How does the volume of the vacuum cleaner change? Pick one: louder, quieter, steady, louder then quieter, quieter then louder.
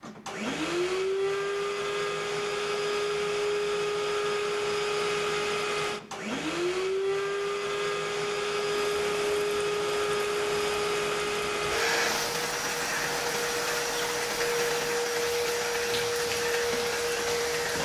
steady.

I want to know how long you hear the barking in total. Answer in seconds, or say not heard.
not heard.